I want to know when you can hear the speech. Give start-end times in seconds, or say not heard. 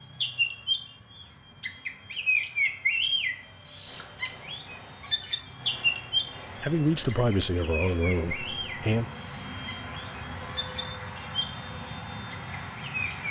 6.6-9.1.